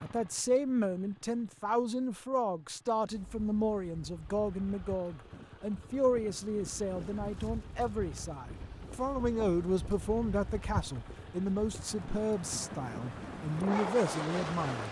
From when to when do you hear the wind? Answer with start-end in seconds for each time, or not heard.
3.0-14.8.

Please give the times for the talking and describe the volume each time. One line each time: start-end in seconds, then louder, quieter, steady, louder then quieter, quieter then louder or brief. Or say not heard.
0.0-14.8 steady.